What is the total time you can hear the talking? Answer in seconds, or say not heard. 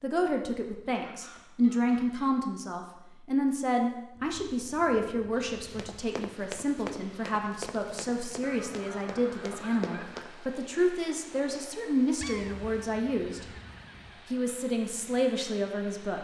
15 s.